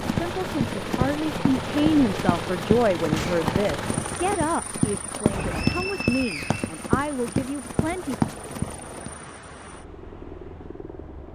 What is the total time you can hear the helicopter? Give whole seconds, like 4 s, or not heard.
11 s.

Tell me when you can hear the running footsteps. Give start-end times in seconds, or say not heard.
0.0-9.1.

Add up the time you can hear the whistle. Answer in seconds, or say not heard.
2 s.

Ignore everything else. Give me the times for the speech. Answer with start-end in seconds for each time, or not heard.
0.1-8.2.